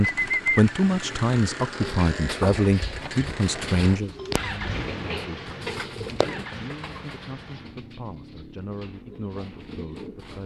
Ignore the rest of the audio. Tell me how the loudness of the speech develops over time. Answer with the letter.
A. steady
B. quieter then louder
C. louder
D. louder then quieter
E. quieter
E.